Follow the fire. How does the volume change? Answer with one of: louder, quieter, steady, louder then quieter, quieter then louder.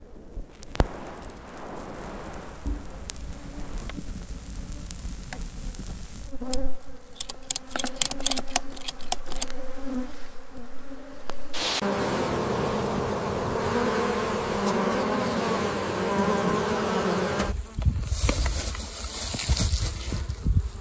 quieter.